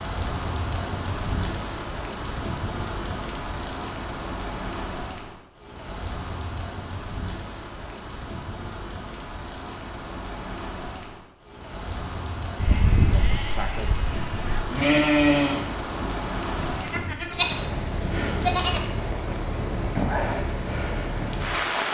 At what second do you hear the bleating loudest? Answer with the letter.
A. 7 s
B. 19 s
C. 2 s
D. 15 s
D.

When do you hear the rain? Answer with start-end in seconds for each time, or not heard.
0.0-21.8.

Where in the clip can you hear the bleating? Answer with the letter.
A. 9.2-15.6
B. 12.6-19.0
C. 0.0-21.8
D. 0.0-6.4
B.